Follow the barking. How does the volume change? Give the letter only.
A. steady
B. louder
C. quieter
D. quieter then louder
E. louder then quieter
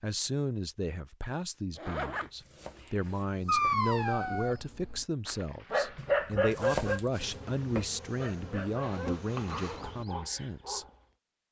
C.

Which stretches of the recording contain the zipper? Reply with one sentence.
The zipper can be heard from 1.8 to 3.8 s and from 8.8 to 9.9 s.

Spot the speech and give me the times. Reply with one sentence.
You can hear the speech from 0.0 to 10.8 s.